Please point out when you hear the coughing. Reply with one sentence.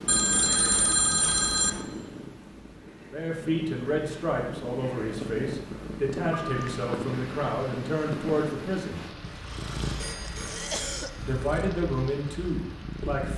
You can hear the coughing from 9.4 to 11.3 s.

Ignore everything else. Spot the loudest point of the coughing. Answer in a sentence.
The volume of the coughing peaks at 11 seconds.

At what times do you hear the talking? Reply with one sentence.
The talking can be heard from 3.1 to 9.1 s and from 11.2 to 13.3 s.